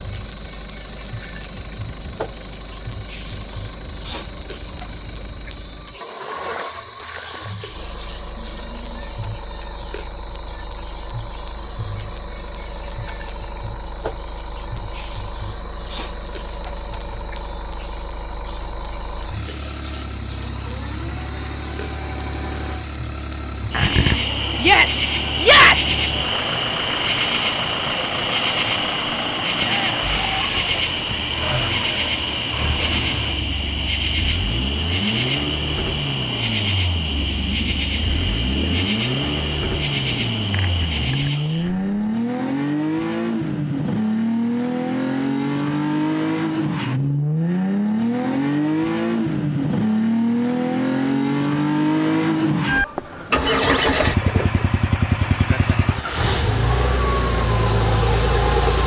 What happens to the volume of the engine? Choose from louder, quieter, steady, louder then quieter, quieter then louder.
louder.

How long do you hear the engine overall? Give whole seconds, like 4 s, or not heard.
59 s.